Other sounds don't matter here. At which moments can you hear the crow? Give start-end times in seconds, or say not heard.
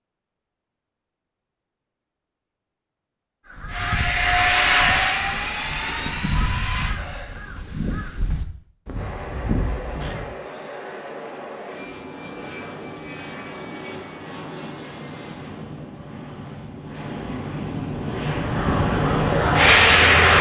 3.5-10.2, 18.4-20.3.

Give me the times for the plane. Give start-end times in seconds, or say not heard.
3.6-7.0, 8.9-20.3.